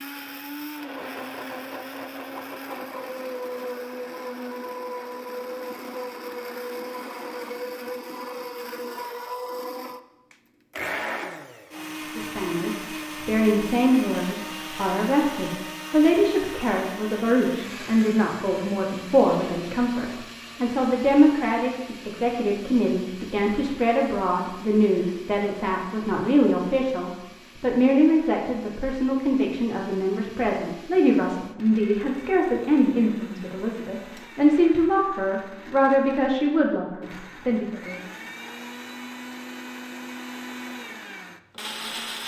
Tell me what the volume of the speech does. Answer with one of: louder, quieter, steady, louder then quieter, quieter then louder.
steady.